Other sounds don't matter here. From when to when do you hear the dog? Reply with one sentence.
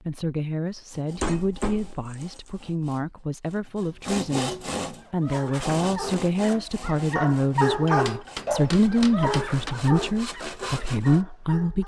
You can hear the dog from 5.0 to 11.8 s.